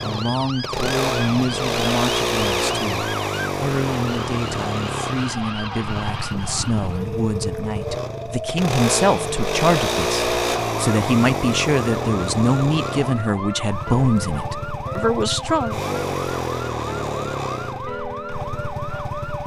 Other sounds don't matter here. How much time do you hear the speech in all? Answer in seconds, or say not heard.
16 s.